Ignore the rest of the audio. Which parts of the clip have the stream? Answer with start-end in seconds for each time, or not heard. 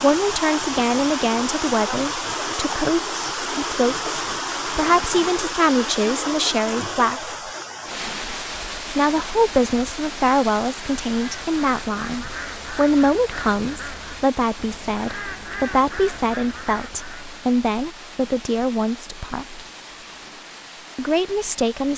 0.0-21.9.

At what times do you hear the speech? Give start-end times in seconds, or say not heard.
0.0-7.3, 8.9-19.6, 20.9-21.9.